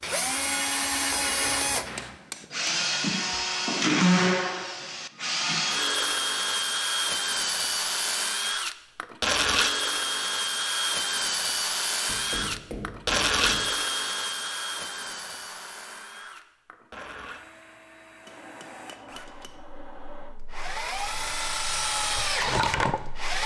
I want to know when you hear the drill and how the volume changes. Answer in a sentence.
You can hear the drill from 0.0 to 23.4 s, getting quieter then louder.